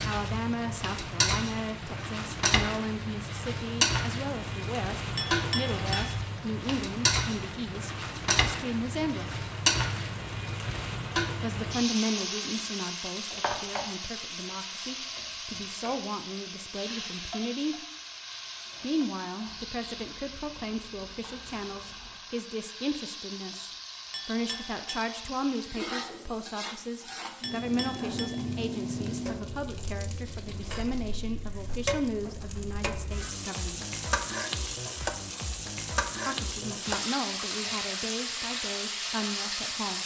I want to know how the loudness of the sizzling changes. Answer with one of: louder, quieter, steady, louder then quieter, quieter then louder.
quieter then louder.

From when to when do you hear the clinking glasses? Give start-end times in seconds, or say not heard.
5.2-6.2, 24.1-25.1, 27.4-28.4.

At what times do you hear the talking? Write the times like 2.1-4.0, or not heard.
0.0-9.3, 11.4-17.9, 18.8-33.9, 36.2-40.0.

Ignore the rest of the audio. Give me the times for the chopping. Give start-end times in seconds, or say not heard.
not heard.